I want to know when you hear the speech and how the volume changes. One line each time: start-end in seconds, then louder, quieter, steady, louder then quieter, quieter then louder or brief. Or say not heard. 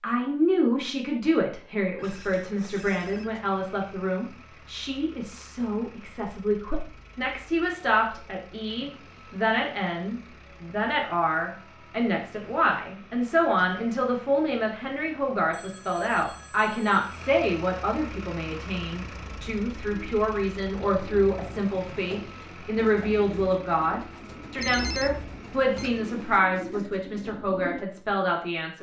0.0-28.7 steady.